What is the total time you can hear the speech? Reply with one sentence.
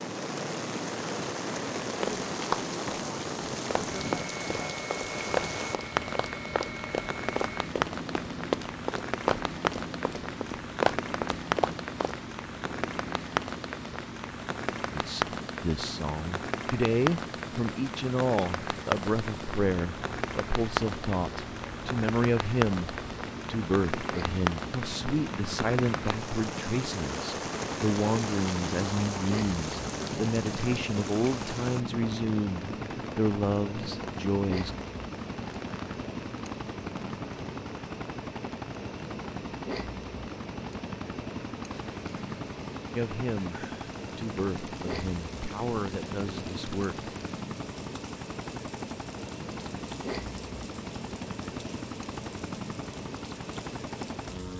You can hear the speech for 24 seconds altogether.